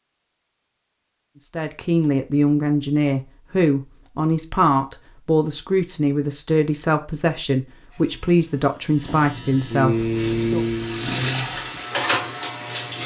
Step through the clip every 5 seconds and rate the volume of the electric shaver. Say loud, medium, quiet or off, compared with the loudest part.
off, loud, loud.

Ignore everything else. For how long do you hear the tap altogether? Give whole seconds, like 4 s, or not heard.
3 s.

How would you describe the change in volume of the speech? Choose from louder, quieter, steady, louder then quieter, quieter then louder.
steady.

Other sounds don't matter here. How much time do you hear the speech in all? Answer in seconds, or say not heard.
9 s.